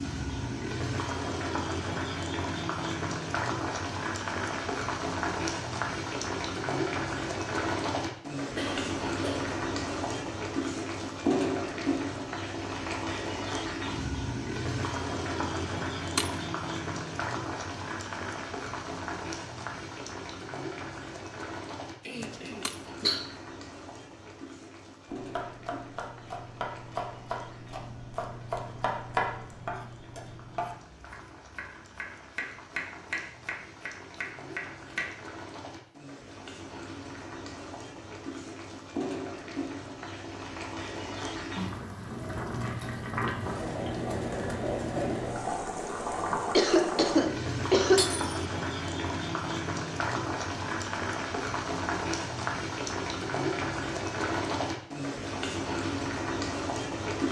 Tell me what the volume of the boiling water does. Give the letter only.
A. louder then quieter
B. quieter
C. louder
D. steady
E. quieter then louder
E.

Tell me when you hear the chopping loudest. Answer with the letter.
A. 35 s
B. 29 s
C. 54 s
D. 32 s
B.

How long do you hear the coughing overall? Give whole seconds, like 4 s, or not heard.
4 s.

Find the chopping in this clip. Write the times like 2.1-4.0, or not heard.
25.1-35.1.